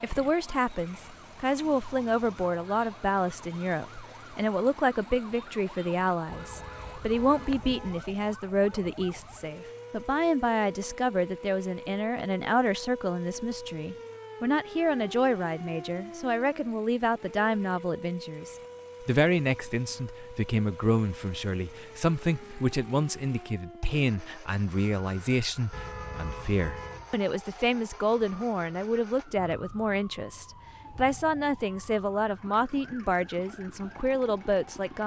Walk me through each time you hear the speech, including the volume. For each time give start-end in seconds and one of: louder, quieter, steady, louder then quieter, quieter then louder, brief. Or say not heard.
0.0-35.0 steady.